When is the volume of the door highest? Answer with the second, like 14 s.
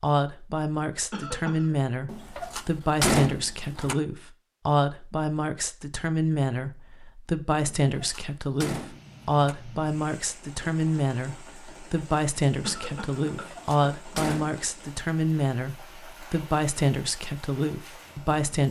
3 s.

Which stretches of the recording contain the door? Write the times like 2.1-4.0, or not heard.
2.0-4.0, 7.8-9.6, 13.3-14.5.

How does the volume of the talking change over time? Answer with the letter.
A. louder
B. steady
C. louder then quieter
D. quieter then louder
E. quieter
B.